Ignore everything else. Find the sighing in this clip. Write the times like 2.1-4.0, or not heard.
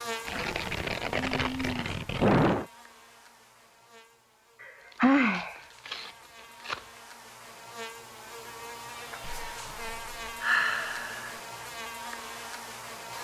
1.1-2.6, 4.6-5.6, 10.4-11.3.